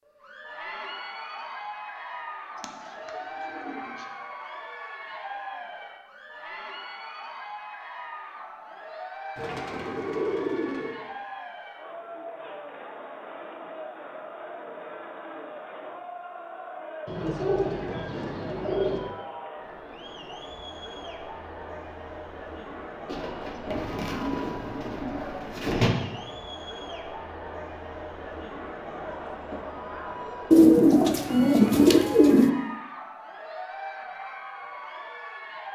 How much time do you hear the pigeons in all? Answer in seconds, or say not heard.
10 s.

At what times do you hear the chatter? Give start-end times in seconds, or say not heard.
0.1-35.7.